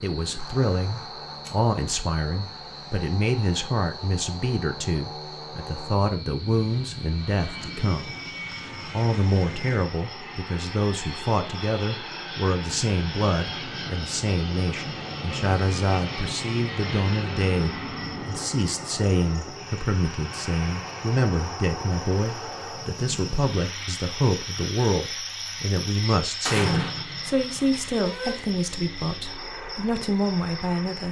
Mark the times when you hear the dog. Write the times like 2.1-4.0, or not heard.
not heard.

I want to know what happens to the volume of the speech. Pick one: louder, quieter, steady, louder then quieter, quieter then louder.
steady.